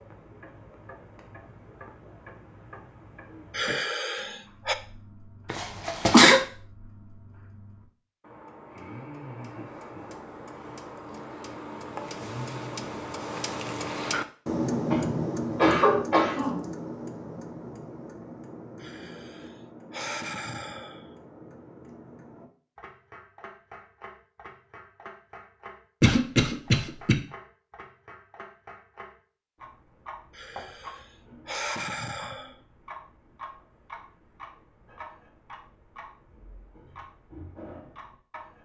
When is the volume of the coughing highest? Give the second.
6 s.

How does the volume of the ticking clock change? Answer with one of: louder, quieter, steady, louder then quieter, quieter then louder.
louder then quieter.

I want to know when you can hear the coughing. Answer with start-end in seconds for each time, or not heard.
5.5-6.4, 14.9-16.6, 26.0-27.1.